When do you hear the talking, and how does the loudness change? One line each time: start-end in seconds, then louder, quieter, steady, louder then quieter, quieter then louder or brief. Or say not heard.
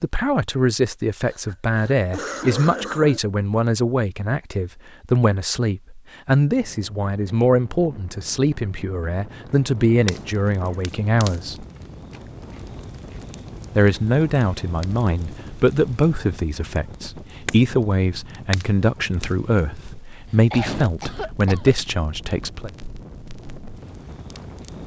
0.0-11.7 steady
13.8-22.7 steady.